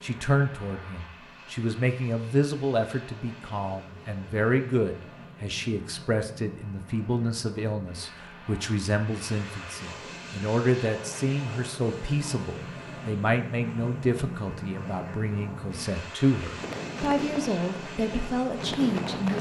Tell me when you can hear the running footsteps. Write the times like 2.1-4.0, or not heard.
16.4-19.3.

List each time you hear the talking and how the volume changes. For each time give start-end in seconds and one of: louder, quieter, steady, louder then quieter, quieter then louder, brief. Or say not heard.
0.0-19.3 steady.